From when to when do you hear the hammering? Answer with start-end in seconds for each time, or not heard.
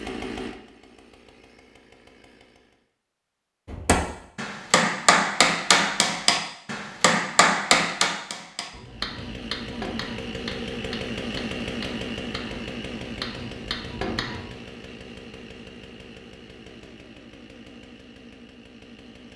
3.6-14.6.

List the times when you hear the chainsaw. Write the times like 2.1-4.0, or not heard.
0.0-2.9, 8.8-19.3.